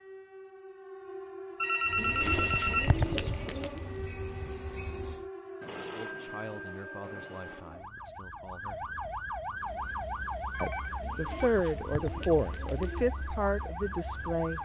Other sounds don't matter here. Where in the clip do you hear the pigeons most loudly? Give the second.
3 s.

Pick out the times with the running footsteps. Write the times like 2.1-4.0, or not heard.
not heard.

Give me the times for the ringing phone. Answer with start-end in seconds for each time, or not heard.
1.6-3.0, 5.6-7.6, 10.5-11.6.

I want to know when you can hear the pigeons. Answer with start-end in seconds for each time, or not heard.
1.9-3.8, 11.0-13.0.